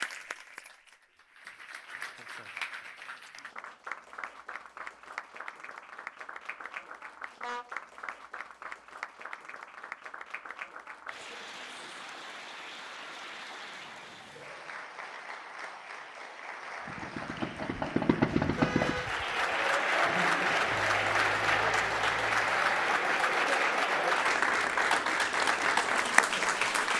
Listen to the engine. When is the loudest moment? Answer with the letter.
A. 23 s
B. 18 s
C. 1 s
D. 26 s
B.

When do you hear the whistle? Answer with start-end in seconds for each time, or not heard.
not heard.